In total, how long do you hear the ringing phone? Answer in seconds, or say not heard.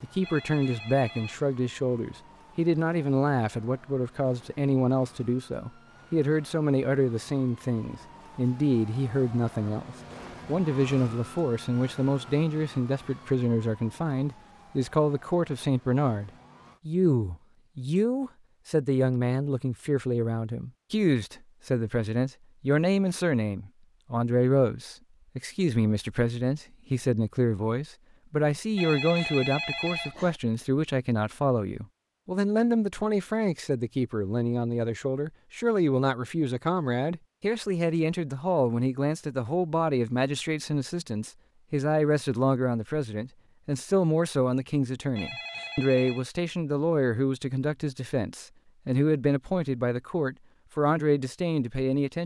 4 s.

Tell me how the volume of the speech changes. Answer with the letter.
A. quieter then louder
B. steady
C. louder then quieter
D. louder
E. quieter
B.